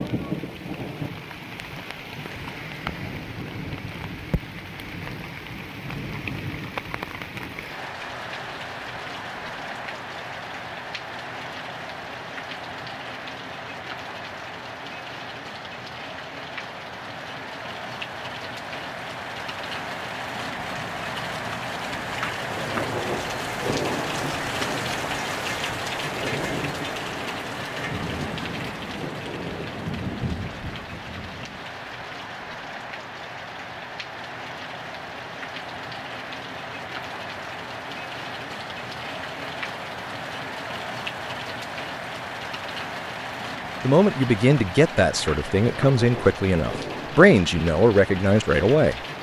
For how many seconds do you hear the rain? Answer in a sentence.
You can hear the rain for 49 seconds altogether.